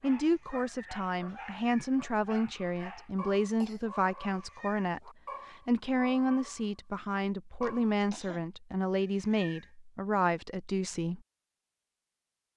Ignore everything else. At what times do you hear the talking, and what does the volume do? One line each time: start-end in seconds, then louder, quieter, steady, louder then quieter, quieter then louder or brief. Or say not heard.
0.0-11.2 steady.